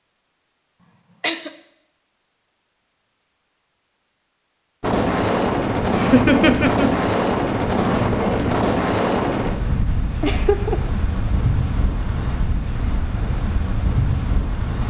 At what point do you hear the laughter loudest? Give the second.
6 s.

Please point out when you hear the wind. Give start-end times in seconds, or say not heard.
4.8-14.8.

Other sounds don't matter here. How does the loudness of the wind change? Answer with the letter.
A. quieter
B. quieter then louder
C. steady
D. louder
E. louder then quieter
A.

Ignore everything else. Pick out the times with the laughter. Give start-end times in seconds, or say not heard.
0.8-1.6, 5.8-6.9, 10.2-10.9.